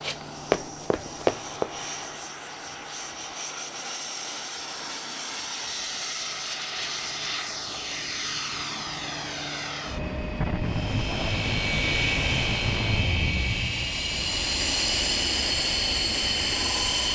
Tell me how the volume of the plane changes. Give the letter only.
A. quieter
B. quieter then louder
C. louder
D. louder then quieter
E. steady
C.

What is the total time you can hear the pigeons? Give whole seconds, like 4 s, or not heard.
not heard.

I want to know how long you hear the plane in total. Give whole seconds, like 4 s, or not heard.
17 s.